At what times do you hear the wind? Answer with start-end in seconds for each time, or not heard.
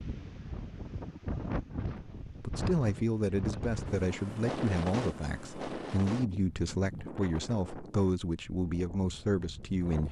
0.0-10.0.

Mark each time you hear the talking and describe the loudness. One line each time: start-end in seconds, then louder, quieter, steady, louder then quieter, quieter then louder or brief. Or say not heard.
2.2-10.0 steady.